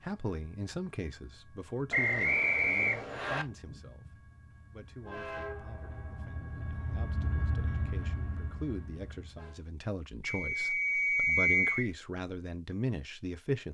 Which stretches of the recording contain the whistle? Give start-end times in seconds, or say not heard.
1.9-3.5, 10.2-11.9.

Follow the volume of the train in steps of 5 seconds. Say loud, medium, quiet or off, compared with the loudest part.
quiet, loud, off.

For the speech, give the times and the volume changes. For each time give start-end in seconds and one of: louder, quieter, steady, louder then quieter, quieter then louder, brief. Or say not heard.
0.0-13.6 quieter then louder.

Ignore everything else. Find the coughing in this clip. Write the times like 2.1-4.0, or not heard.
not heard.